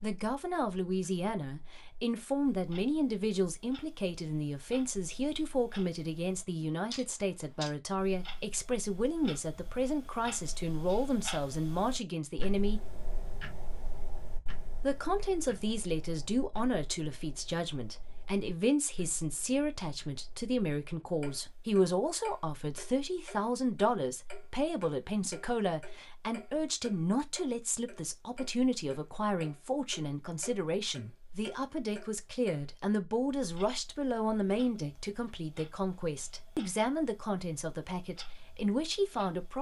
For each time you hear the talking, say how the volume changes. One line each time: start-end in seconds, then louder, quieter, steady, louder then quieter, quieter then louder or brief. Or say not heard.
0.0-12.8 steady
14.8-39.5 steady.